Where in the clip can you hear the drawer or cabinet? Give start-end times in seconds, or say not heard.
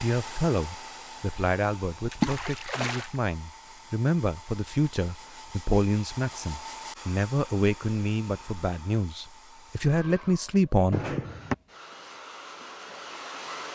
10.9-11.6.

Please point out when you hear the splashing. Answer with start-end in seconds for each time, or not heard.
2.1-3.1.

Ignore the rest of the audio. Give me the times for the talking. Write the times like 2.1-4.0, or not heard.
0.0-11.0.